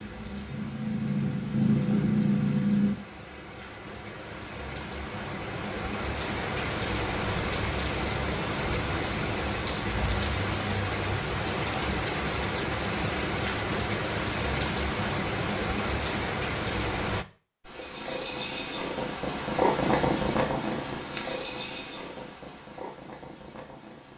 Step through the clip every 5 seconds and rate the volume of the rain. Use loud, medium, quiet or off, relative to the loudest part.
quiet, loud, loud, loud, off.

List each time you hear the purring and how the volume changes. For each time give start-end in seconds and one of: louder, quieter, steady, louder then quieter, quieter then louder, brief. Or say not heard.
0.0-3.0 brief
17.6-24.1 louder then quieter.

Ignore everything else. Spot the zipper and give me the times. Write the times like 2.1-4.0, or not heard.
not heard.